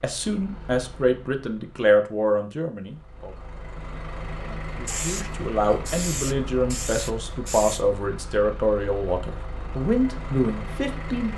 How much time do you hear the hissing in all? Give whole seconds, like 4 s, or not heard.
3 s.